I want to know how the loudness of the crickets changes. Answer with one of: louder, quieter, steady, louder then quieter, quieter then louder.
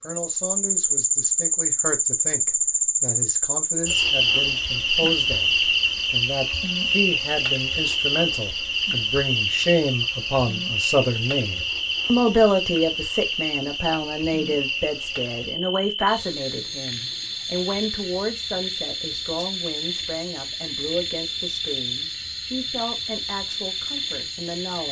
quieter.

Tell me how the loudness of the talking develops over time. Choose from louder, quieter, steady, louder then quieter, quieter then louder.
louder then quieter.